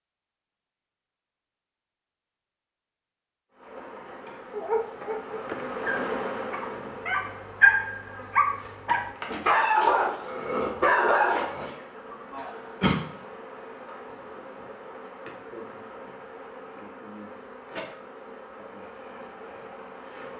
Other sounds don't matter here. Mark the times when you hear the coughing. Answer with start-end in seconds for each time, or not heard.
12.3-13.0.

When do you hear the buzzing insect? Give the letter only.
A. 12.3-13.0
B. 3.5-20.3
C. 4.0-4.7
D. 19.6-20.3
B.